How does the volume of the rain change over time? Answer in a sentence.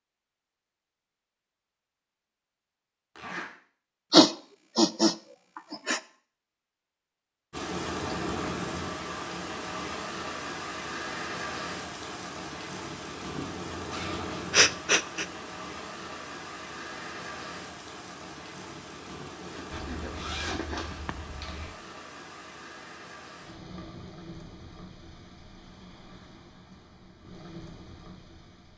The loudness of the rain goes down.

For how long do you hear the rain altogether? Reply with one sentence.
You can hear the rain for 21 seconds altogether.